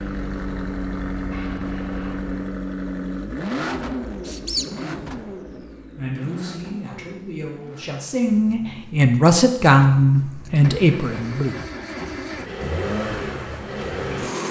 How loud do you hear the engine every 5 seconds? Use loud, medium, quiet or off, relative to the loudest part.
loud, medium, loud.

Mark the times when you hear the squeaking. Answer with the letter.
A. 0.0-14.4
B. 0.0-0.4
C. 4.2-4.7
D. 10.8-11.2
C.